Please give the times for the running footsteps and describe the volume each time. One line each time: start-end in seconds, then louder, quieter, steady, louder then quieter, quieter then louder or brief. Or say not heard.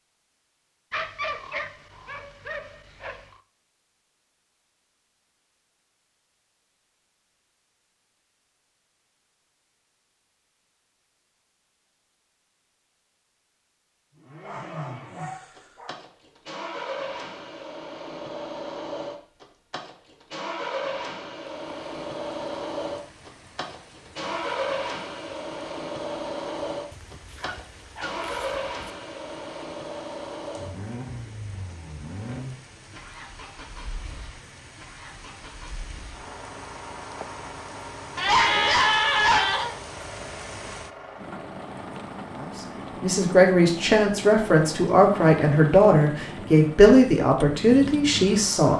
not heard.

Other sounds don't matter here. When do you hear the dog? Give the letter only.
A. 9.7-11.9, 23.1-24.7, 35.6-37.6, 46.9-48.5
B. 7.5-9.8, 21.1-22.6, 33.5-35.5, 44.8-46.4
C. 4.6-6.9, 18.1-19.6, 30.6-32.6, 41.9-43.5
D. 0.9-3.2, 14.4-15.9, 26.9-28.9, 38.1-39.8
D.